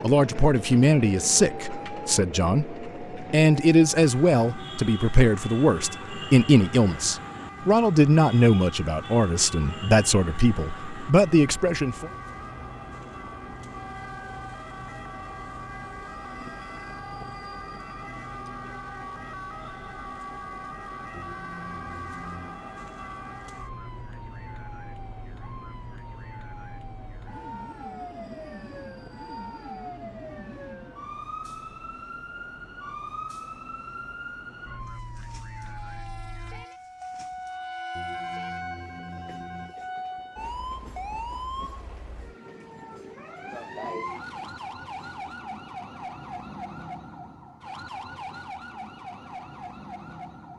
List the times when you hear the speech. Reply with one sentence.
You can hear the speech from 0.0 to 12.1 s.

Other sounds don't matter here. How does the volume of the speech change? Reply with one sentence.
The volume of the speech stays about the same.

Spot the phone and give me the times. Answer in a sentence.
The phone can be heard from 21.1 to 22.6 s and from 38.0 to 39.8 s.